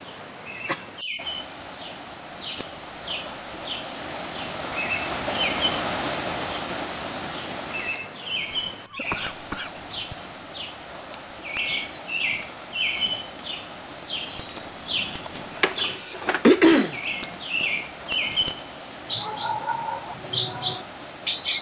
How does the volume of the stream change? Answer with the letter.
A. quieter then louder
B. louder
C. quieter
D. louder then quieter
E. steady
D.